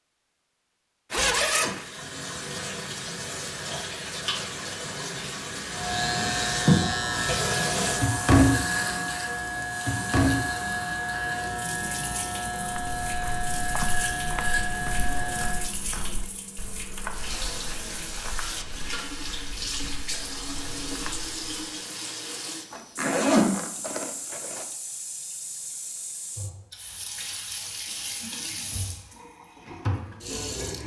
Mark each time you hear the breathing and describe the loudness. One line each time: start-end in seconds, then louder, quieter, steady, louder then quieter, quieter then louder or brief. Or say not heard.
not heard.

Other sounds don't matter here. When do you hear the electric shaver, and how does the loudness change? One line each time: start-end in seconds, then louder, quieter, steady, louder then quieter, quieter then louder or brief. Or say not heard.
5.7-15.7 steady.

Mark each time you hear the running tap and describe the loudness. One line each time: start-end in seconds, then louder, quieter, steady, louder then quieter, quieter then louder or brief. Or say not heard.
1.7-30.8 quieter.